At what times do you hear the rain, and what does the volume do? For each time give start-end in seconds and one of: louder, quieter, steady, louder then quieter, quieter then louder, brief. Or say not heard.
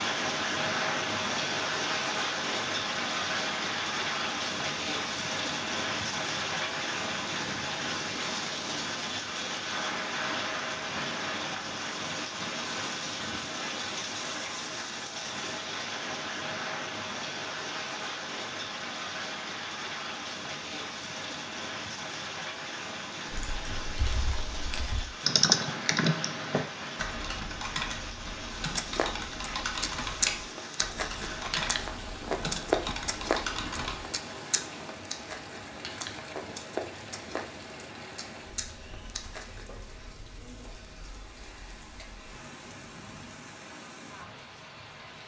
0.0-45.2 quieter.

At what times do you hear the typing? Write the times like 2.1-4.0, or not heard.
23.4-34.0.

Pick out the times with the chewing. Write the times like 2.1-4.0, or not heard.
28.8-39.6.